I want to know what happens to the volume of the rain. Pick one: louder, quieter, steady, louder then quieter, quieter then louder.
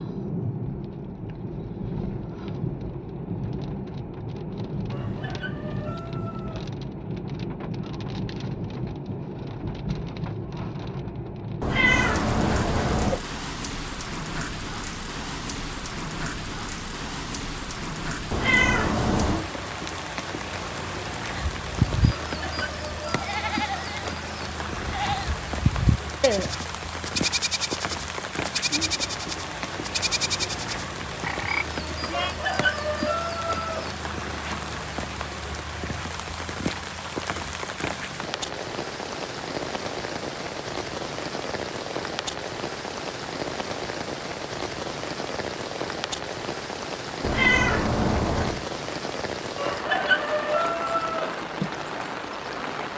steady.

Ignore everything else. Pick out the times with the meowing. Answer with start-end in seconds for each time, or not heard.
11.6-13.2, 18.3-19.4, 47.2-48.6.